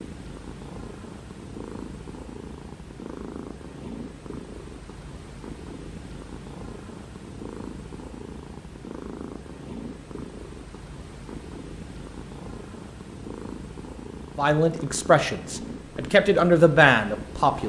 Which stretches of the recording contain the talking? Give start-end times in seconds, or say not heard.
14.3-17.6.